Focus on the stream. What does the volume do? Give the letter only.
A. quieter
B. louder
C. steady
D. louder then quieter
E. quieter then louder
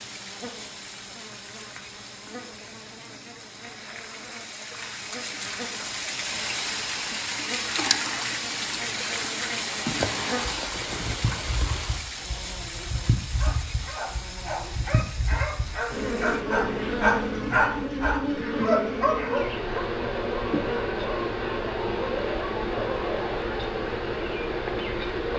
D.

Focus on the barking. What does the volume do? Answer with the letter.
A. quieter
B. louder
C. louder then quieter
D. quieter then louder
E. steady
C.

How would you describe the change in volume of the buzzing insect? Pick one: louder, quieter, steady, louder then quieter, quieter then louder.
louder.